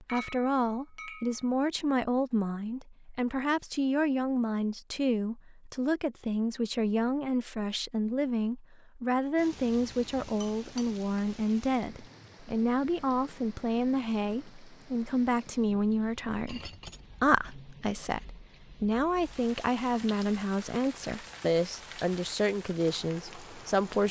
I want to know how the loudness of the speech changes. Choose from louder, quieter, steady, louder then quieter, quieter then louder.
steady.